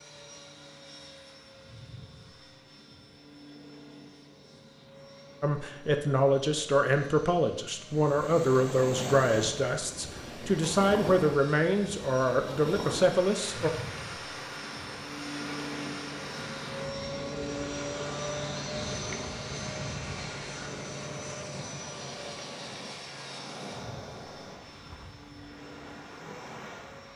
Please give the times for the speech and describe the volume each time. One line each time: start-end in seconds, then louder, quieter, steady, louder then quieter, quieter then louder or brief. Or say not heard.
5.4-13.7 steady.